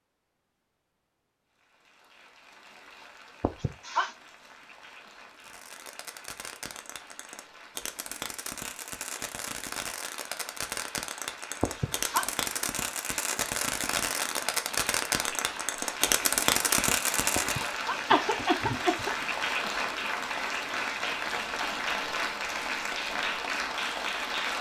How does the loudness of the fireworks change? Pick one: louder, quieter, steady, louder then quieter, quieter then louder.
louder.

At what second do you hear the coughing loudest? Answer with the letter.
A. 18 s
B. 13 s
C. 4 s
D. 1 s
A.